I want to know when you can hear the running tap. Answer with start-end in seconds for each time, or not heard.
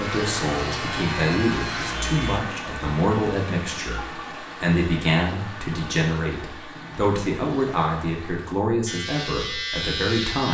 0.0-8.6.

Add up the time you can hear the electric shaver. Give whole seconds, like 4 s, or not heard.
4 s.